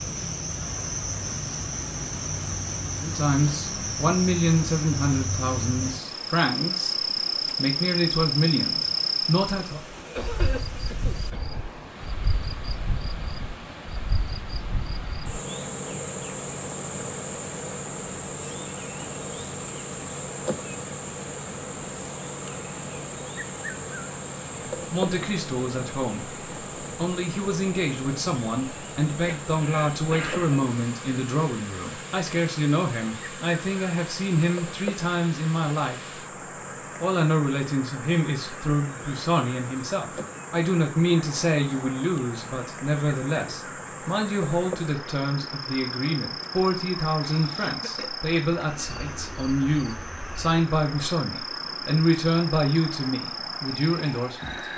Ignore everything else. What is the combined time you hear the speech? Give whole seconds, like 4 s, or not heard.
36 s.